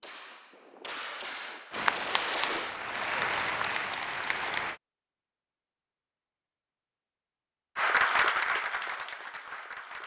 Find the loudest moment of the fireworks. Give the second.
2 s.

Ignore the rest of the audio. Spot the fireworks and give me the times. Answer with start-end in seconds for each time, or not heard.
0.0-2.8.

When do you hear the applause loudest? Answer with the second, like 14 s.
8 s.